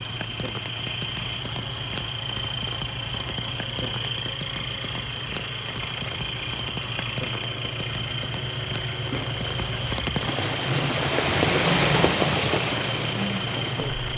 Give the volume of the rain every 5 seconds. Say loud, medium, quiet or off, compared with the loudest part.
quiet, quiet, loud.